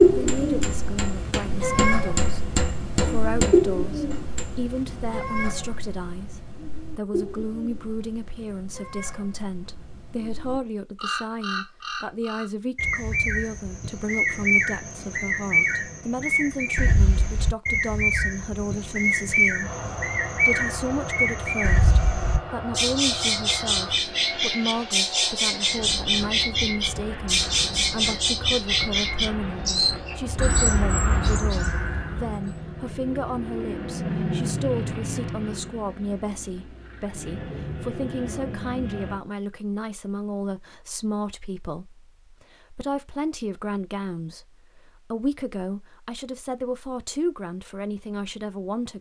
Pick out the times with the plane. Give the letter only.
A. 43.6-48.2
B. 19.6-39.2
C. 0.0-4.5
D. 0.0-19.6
B.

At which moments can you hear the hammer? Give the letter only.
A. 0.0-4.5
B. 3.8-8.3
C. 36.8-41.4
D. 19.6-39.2
A.